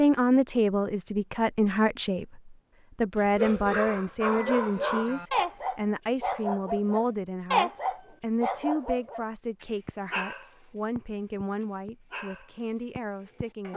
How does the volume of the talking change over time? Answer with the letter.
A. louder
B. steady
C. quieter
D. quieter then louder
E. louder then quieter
C.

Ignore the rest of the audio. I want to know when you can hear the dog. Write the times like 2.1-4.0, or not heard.
3.2-13.7.